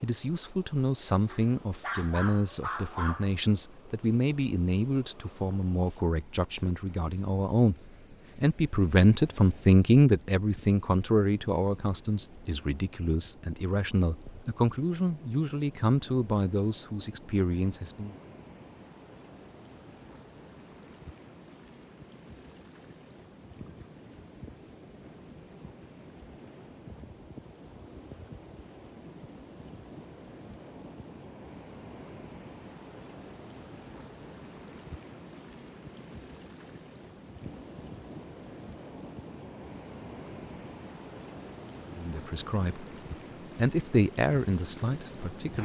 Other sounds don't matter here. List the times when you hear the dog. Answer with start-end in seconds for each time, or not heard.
1.2-3.4.